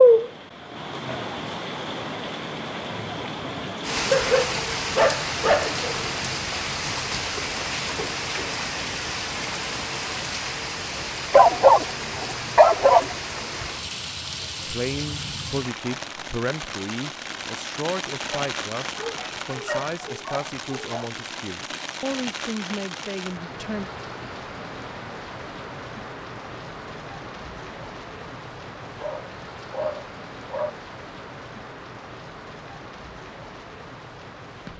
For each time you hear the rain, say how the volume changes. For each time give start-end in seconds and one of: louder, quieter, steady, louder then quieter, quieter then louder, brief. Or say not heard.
0.0-34.7 quieter.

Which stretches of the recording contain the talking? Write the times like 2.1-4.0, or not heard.
14.7-23.9.